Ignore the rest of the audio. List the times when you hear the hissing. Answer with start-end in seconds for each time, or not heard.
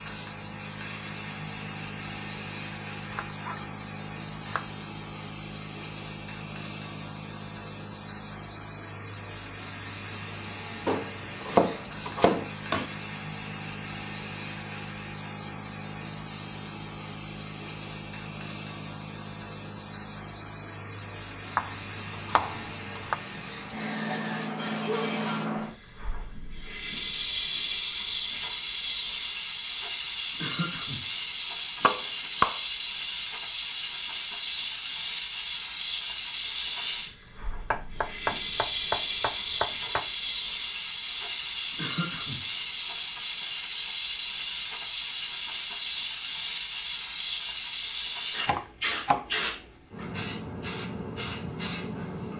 0.0-52.3.